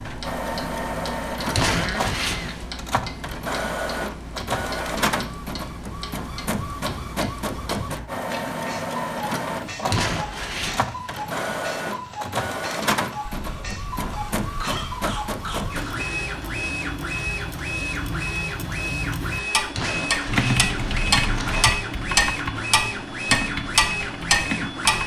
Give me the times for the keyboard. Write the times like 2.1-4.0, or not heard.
20.2-25.0.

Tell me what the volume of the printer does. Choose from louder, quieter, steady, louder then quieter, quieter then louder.
steady.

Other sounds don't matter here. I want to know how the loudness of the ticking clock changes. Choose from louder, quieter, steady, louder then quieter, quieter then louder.
louder.